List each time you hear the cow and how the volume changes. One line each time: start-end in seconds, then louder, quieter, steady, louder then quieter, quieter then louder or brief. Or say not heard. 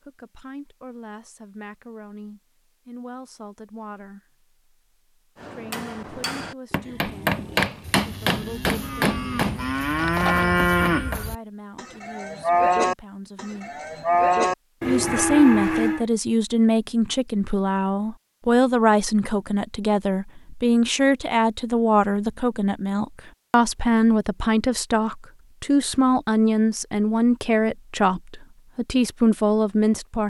6.8-16.1 louder.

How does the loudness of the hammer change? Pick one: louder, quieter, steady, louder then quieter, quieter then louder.
louder then quieter.